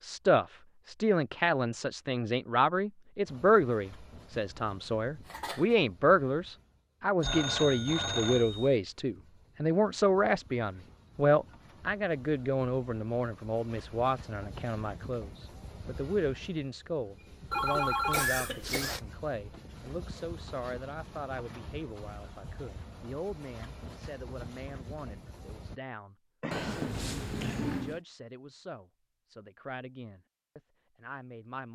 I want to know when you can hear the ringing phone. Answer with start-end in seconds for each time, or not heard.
7.2-8.8, 17.5-19.0, 26.5-28.0.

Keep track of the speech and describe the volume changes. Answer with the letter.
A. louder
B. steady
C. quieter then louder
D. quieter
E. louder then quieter
D.